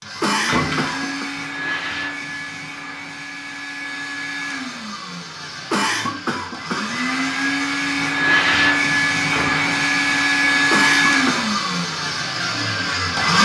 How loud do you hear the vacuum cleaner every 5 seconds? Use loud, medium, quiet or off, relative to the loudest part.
medium, loud, loud.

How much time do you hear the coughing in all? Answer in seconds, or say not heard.
3 s.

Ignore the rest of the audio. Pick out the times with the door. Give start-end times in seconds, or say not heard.
0.5-1.2, 9.3-9.8.